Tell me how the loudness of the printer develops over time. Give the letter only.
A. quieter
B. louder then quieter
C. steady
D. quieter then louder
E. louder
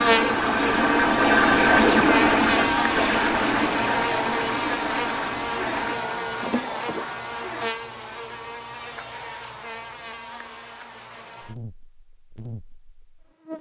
A.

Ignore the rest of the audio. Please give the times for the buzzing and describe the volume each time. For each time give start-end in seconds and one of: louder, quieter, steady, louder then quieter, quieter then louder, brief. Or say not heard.
0.0-13.5 quieter.